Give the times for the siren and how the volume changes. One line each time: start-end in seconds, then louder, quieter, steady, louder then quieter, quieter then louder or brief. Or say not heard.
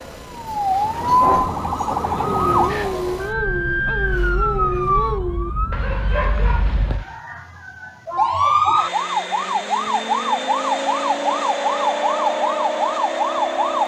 0.0-13.8 quieter then louder.